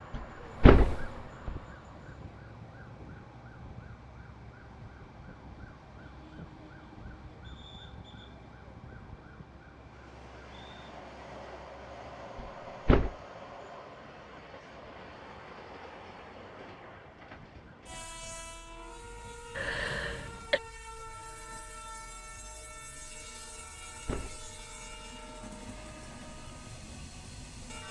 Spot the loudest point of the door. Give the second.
1 s.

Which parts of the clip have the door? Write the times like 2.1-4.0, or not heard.
0.1-1.6, 12.3-13.2, 23.6-25.0.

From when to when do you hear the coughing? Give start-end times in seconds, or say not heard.
19.6-20.6.